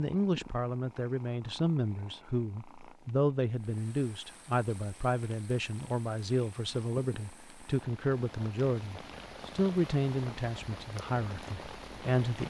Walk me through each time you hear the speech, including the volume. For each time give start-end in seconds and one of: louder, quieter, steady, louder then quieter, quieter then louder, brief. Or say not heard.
0.0-12.4 steady.